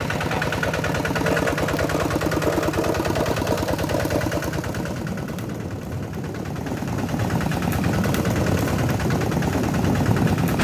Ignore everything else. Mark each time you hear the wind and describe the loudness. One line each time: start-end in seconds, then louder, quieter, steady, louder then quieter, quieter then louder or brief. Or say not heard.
0.0-10.5 louder.